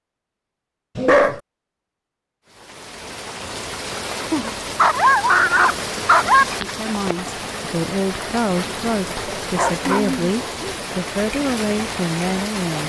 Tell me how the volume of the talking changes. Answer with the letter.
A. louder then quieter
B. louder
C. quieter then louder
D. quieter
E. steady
E.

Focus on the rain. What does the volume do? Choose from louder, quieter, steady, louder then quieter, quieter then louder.
steady.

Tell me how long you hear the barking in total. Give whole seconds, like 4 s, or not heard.
4 s.